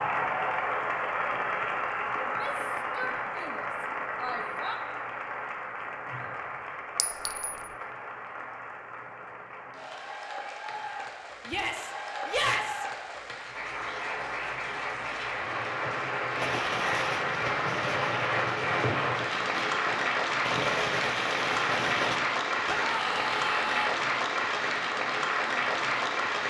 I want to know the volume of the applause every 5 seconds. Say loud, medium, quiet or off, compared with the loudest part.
loud, medium, medium, loud, loud, loud.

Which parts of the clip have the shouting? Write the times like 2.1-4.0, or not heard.
2.2-4.8, 11.4-12.8, 22.6-23.9.